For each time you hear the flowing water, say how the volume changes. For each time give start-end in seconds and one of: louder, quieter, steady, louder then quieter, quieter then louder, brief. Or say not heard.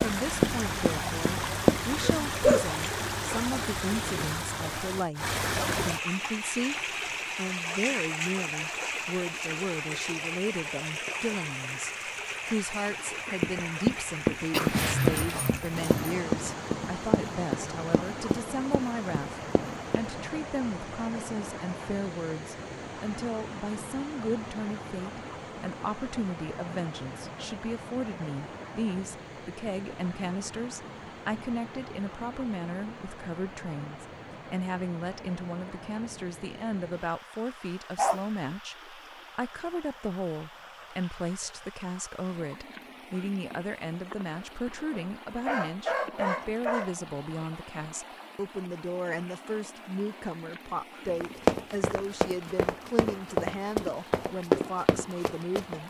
0.0-55.8 quieter.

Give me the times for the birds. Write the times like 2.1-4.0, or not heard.
not heard.